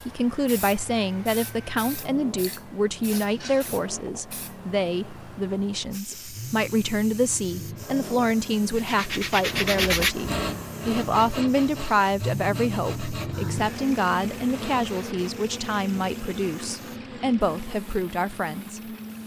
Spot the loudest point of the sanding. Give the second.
10 s.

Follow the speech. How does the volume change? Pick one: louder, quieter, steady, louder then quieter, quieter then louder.
steady.